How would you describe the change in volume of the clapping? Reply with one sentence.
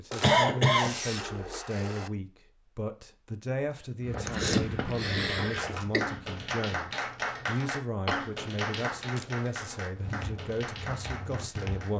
The volume of the clapping goes down.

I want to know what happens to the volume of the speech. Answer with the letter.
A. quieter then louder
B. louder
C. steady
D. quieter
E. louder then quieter
C.